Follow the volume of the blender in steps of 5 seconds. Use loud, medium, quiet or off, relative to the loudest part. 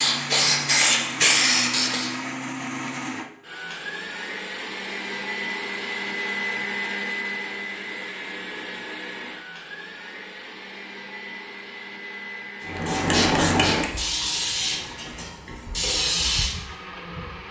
loud, loud, medium, medium.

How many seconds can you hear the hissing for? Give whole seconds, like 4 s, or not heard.
7 s.